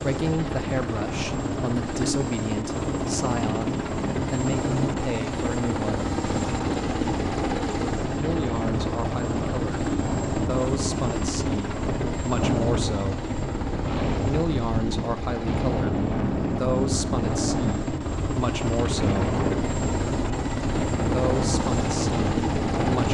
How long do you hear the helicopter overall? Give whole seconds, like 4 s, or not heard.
23 s.